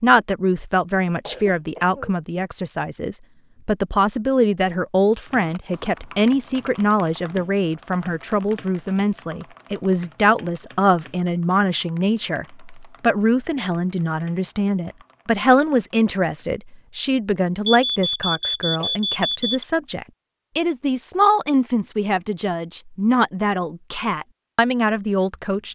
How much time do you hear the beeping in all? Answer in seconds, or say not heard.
2 s.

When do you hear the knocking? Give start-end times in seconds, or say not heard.
not heard.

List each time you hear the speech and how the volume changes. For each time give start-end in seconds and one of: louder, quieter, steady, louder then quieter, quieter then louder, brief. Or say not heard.
0.0-25.7 steady.